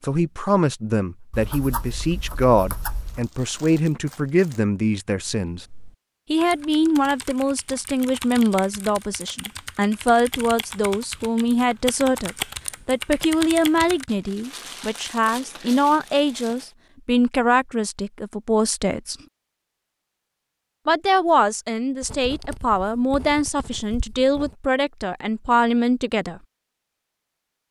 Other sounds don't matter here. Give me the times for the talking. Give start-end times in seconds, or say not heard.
0.0-5.7, 6.3-19.1, 20.9-26.4.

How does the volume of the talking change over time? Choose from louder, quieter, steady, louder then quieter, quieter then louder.
steady.